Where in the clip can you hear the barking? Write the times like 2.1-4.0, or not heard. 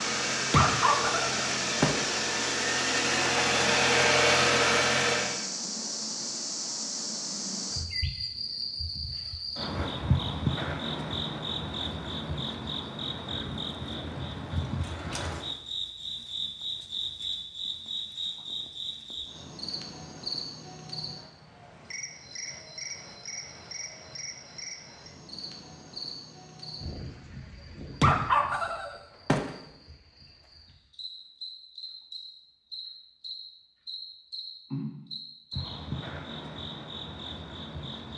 0.5-2.0, 28.0-29.5.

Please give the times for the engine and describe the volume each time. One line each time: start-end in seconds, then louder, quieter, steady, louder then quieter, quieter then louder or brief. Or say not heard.
0.0-5.4 louder.